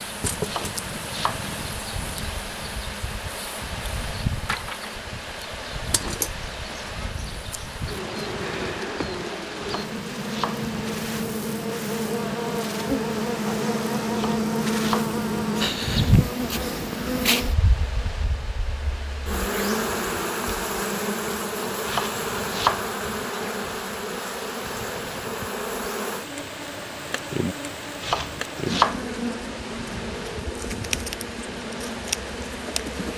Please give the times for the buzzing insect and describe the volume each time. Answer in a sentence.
You can hear the buzzing insect from 0.0 to 33.1 s, getting louder then quieter.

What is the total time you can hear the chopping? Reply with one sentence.
The chopping can be heard for 5 seconds in total.